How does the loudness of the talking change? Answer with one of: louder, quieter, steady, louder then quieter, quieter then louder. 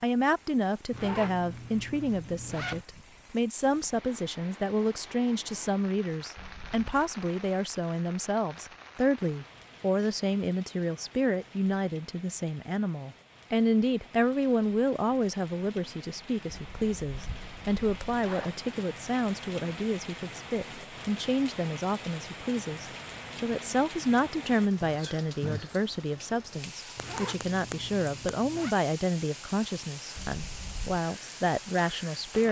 steady.